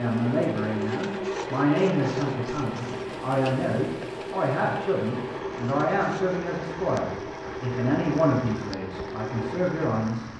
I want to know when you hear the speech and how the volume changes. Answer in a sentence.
The speech can be heard from 0.0 to 10.3 s, at a steady volume.